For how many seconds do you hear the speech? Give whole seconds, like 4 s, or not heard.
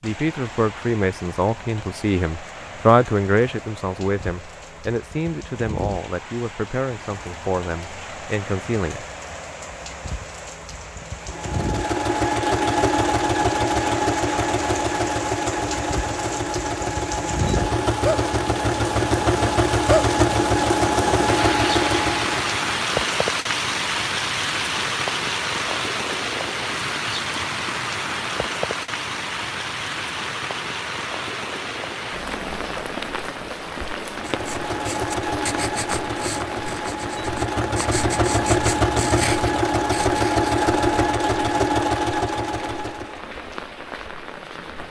9 s.